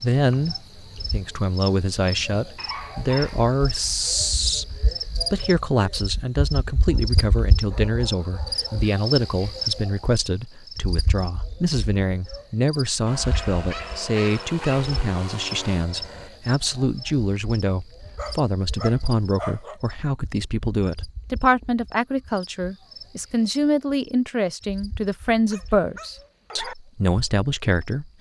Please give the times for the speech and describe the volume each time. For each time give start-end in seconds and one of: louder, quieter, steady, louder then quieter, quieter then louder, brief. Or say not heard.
0.0-28.1 steady.